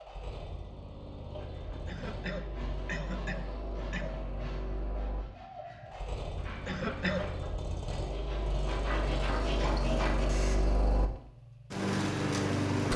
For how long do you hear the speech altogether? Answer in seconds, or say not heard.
not heard.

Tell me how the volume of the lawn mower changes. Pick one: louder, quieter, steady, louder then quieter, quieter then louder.
louder.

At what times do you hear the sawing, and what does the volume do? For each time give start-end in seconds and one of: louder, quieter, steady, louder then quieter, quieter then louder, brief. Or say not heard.
1.4-10.6 louder.